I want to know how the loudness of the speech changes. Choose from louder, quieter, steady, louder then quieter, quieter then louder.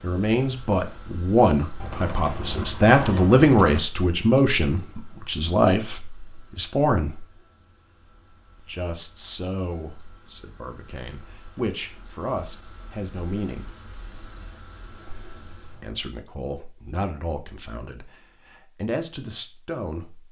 quieter.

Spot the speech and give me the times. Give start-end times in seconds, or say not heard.
0.0-7.2, 8.7-13.7, 15.1-20.2.